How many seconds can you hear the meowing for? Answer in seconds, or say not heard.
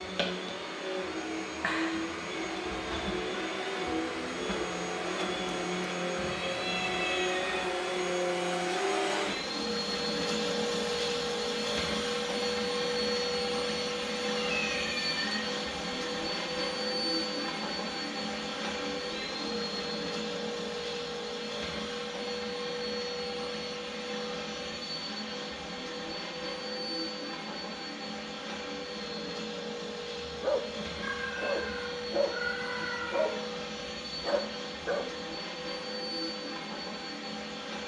5 s.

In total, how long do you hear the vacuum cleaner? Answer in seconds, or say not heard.
38 s.